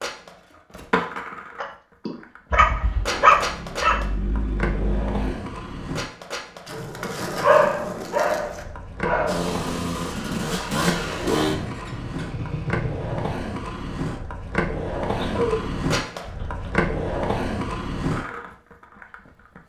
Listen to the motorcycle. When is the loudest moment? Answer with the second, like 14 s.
11 s.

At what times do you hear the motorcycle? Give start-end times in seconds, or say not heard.
2.5-5.3, 9.2-13.3.